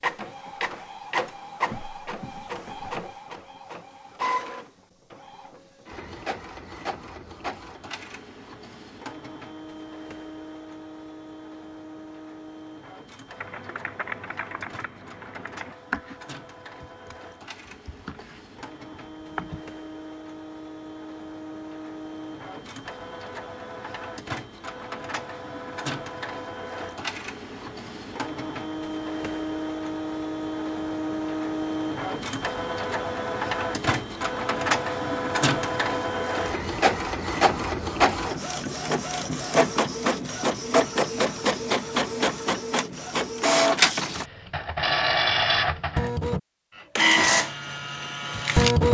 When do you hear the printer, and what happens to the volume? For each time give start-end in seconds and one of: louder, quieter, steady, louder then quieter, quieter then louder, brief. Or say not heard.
0.0-48.8 quieter then louder.